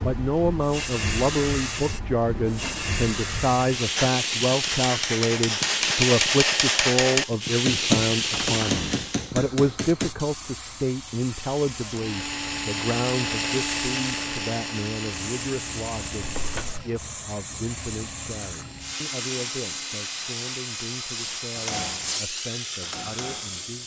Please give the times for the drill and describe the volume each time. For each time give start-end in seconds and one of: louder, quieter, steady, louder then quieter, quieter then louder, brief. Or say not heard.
11.8-20.0 quieter.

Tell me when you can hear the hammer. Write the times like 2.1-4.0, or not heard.
4.0-10.1, 21.6-23.6.